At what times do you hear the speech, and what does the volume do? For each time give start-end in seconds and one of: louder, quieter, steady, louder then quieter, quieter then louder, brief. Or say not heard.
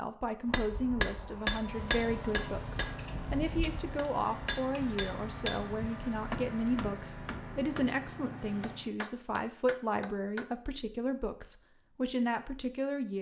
0.0-13.1 steady.